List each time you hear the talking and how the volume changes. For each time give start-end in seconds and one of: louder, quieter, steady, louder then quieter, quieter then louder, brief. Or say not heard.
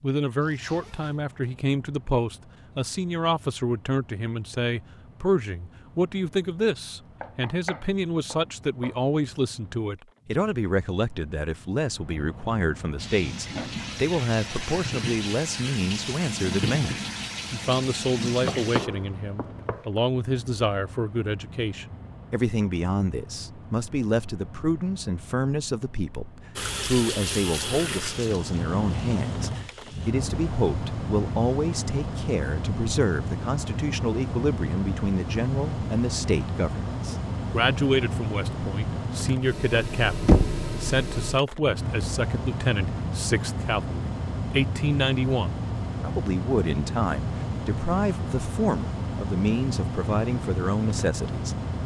0.0-51.5 steady.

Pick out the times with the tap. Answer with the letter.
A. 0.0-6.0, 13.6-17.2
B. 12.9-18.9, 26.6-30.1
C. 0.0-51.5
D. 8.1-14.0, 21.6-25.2
B.